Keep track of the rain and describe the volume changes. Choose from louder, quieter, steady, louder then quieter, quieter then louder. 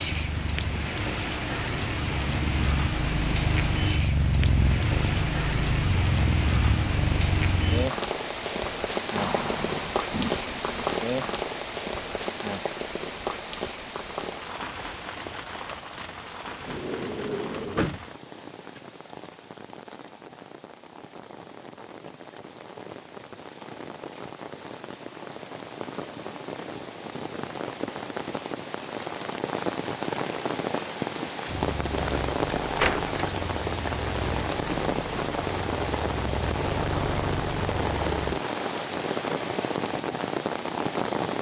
quieter then louder.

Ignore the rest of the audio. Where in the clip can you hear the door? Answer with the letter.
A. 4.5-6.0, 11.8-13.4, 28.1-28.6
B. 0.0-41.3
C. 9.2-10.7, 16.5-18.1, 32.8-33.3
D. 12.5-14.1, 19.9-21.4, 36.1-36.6
C.